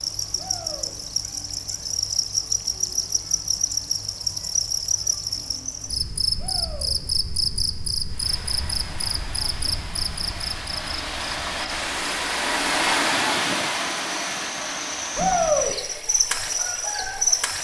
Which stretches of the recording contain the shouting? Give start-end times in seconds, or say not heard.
0.3-0.9, 6.3-7.0, 15.2-15.8.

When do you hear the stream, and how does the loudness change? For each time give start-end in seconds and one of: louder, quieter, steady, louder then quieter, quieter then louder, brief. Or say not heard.
8.1-17.6 louder then quieter.